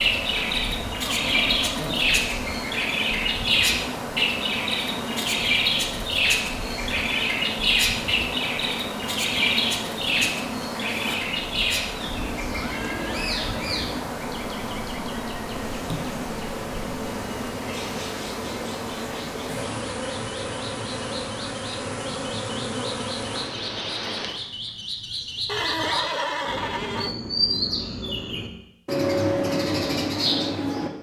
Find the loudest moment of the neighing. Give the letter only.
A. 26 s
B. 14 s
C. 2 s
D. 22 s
A.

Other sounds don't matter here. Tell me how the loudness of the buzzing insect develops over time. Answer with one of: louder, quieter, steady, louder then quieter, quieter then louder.
steady.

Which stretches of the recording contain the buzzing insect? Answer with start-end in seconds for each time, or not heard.
0.0-24.4.